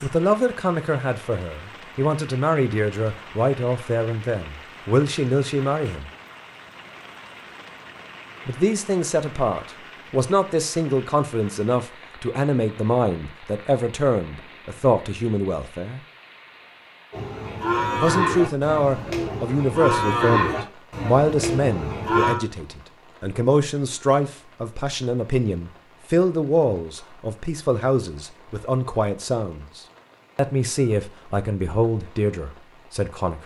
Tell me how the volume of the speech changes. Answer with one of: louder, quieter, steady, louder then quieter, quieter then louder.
steady.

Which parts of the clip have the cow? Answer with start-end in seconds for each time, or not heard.
17.1-22.4.